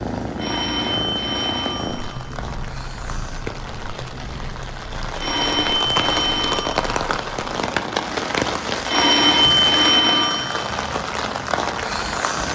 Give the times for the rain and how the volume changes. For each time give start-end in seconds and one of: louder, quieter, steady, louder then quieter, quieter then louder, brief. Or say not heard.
0.0-12.5 louder.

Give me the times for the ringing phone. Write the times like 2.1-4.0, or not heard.
0.3-2.3, 5.2-6.8, 8.8-10.8.